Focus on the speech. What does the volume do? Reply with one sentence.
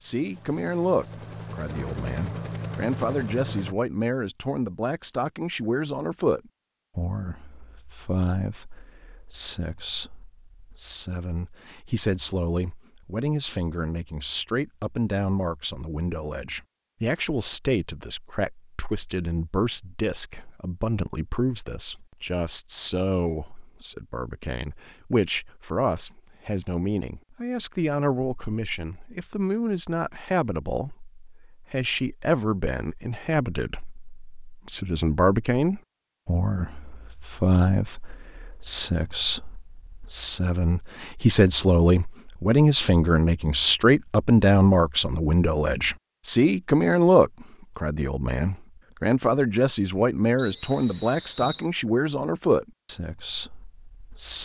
The loudness of the speech goes up.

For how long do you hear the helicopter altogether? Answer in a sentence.
The helicopter can be heard for 4 seconds in total.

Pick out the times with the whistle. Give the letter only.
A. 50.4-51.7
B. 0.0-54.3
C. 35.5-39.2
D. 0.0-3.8
A.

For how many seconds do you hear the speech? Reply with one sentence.
The speech can be heard for 54 seconds in total.